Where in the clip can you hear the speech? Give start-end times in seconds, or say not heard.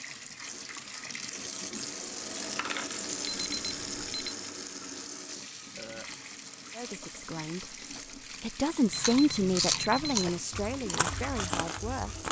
6.8-7.8, 8.4-12.2.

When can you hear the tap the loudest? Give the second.
3 s.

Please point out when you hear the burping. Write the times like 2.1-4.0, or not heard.
5.8-6.2.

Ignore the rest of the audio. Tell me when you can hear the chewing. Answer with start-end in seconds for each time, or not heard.
8.9-12.2.